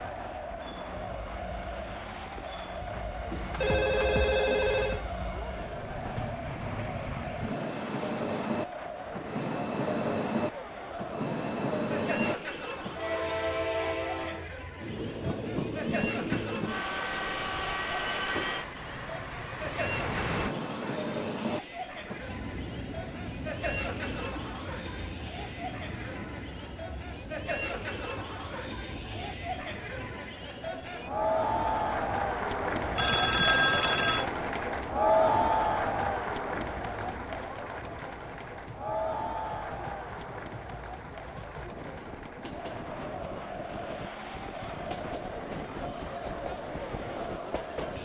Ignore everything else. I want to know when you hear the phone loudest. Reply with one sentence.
The volume of the phone peaks at 34 seconds.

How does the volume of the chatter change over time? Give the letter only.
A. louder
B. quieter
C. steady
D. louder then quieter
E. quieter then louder
D.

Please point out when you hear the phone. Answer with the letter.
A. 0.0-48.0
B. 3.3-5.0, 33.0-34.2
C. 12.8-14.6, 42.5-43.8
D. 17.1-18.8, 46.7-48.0
B.